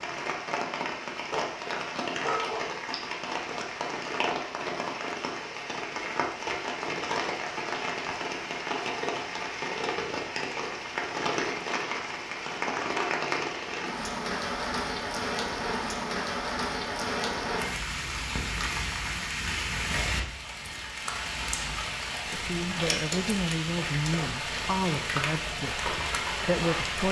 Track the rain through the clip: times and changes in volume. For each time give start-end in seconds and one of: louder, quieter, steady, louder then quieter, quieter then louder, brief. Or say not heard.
0.0-27.0 steady.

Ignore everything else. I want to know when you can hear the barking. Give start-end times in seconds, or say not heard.
1.3-2.8.